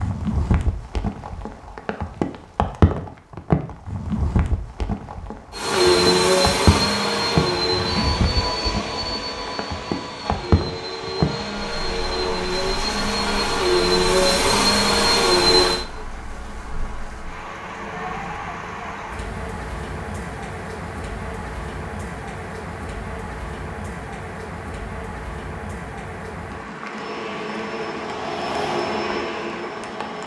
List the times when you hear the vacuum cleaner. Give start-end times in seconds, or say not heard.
5.5-15.8, 26.8-30.2.